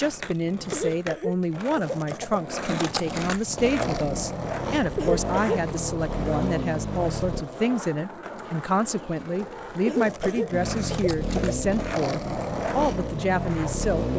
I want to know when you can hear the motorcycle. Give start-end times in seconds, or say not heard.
3.5-7.5, 10.5-14.1.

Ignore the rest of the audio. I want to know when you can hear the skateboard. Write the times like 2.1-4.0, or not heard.
0.0-14.1.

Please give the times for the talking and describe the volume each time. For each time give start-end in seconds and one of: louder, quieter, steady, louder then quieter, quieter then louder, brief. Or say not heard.
0.0-14.1 steady.